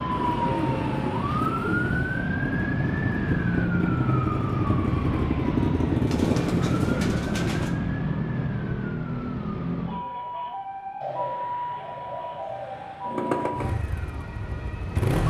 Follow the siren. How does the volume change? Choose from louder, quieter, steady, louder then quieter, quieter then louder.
quieter.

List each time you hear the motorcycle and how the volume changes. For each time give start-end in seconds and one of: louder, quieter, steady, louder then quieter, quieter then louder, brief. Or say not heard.
0.0-7.3 louder
13.1-15.2 brief.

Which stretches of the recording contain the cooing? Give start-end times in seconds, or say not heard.
0.1-2.3, 6.0-7.8, 11.0-13.5.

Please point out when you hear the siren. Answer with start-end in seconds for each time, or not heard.
0.0-15.2.